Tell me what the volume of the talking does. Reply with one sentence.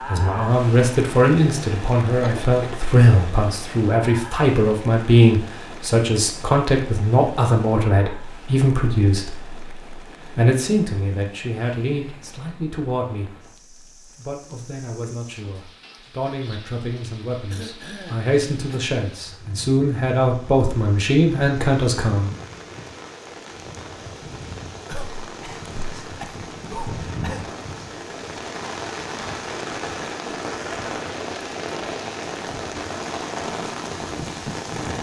The loudness of the talking goes down, then up.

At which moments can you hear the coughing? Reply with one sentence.
You can hear the coughing from 2.2 to 2.8 s, from 17.5 to 18.8 s and from 24.9 to 27.5 s.